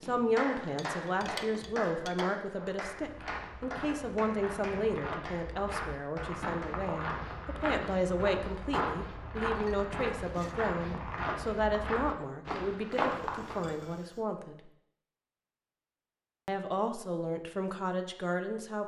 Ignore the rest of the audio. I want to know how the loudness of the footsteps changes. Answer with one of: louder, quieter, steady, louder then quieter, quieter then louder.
louder.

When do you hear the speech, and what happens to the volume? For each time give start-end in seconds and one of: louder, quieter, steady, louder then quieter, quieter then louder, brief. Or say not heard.
0.0-14.6 steady
16.4-18.8 brief.